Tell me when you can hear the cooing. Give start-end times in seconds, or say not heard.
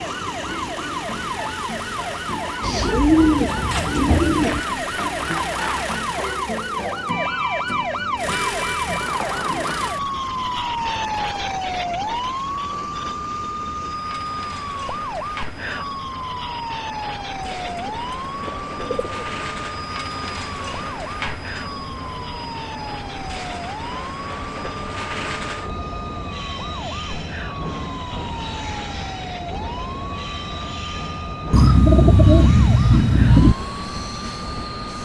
2.6-4.6, 17.4-19.1, 31.5-33.5.